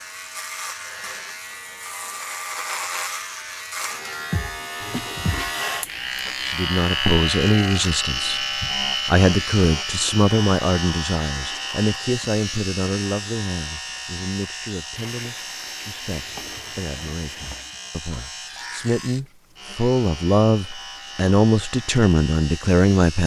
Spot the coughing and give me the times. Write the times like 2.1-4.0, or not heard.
not heard.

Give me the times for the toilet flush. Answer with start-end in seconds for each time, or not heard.
4.8-5.6, 14.9-17.8.